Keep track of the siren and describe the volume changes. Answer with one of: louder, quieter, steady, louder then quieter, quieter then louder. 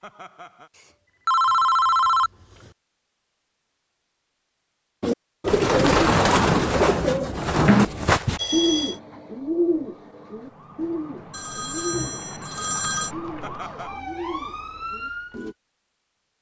louder.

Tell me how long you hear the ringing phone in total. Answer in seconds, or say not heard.
4 s.